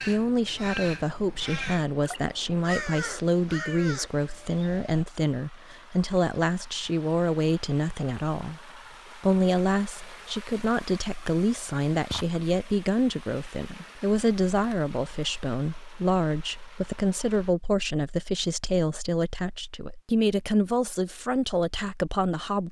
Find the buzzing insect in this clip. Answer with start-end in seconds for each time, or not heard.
not heard.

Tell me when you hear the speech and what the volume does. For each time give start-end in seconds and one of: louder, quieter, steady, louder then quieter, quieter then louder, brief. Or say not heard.
0.0-22.6 steady.